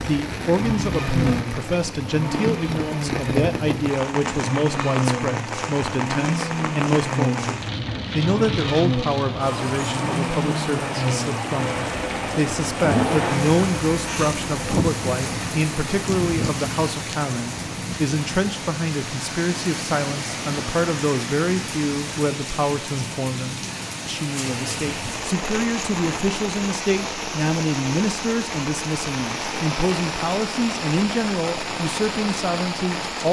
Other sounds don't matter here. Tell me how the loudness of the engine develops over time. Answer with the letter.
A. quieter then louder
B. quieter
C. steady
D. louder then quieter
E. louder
C.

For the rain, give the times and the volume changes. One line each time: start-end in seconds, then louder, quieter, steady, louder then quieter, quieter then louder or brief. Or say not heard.
0.0-33.2 steady.